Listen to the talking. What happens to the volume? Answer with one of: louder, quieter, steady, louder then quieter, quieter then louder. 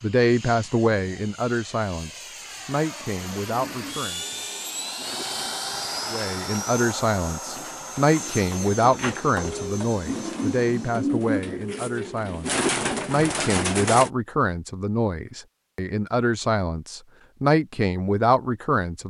steady.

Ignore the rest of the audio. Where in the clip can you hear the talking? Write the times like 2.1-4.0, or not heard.
0.0-4.3, 6.1-19.0.